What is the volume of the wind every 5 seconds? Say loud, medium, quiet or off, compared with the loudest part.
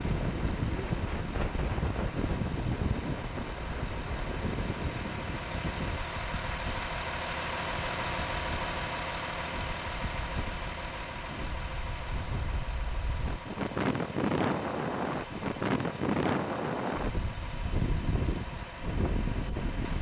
loud, medium, loud, loud.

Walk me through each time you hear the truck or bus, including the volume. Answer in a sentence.
The truck or bus can be heard from 0.0 to 19.9 s, getting louder then quieter.